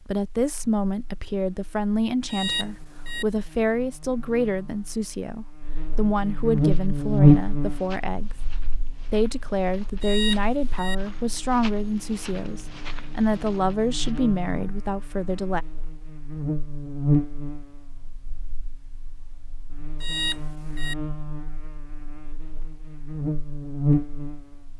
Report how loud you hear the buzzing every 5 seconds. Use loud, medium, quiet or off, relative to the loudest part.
quiet, loud, quiet, medium, medium.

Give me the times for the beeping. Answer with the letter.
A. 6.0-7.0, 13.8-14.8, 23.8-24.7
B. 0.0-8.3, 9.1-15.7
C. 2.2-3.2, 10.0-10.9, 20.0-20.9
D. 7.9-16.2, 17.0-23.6
C.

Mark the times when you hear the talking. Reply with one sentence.
The talking can be heard from 0.0 to 8.3 s and from 9.1 to 15.7 s.